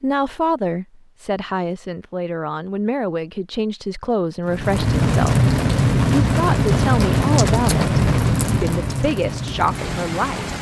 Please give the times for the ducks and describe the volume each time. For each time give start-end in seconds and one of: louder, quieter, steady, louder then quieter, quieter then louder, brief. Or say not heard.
not heard.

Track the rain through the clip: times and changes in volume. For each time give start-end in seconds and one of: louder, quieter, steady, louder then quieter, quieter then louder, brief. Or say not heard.
4.5-10.5 quieter.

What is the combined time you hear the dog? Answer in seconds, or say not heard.
not heard.